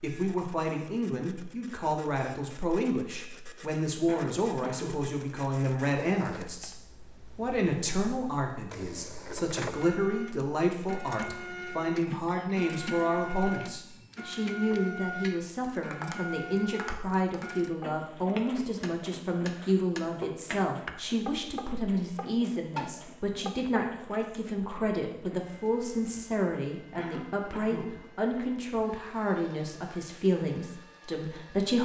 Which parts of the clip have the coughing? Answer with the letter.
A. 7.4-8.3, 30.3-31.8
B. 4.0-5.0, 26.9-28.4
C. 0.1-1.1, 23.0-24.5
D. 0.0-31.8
B.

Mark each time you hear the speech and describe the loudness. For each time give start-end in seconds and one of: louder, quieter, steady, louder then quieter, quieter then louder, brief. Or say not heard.
0.0-31.8 steady.